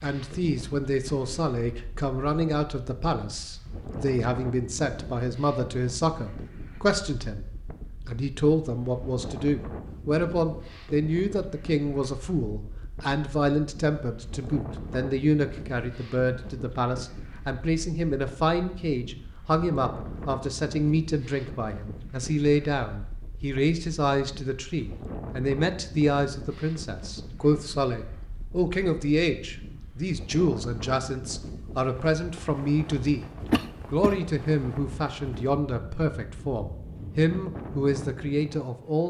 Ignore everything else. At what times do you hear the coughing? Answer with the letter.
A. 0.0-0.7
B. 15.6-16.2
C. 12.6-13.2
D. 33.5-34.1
D.